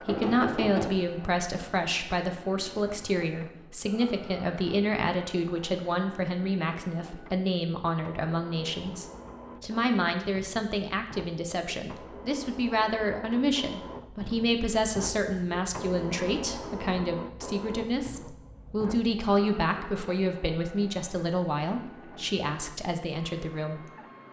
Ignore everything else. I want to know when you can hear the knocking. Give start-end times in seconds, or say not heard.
0.1-0.9.